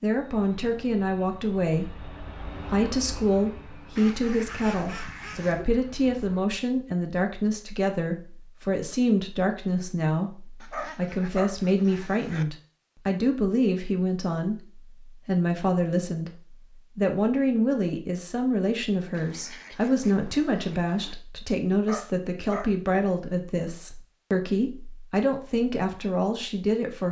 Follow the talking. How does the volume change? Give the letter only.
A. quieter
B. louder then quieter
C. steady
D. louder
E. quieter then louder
C.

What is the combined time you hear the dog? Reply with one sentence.
The dog can be heard for 2 seconds in total.